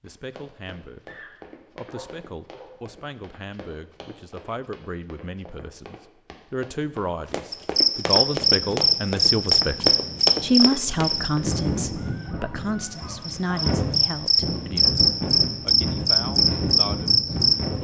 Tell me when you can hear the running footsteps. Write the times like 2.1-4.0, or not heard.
0.0-11.4.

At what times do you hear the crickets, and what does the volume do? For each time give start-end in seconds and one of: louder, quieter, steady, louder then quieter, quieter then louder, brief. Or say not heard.
7.5-17.6 quieter then louder.